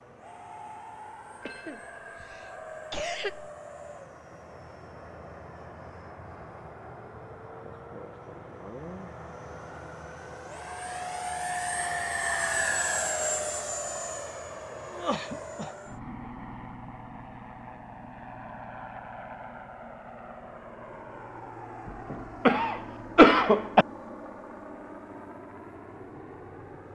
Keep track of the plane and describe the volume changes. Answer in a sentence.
The volume of the plane goes up, then down.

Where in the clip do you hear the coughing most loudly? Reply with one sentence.
The loudest moment of the coughing is at 23 seconds.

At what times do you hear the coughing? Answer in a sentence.
The coughing can be heard from 1.4 to 3.5 s, from 14.8 to 15.9 s and from 21.9 to 23.9 s.